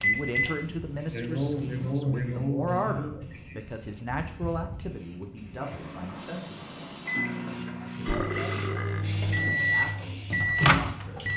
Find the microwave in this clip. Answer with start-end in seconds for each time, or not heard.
0.0-1.9, 6.6-11.3.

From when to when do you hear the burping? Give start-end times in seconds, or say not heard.
8.0-9.1.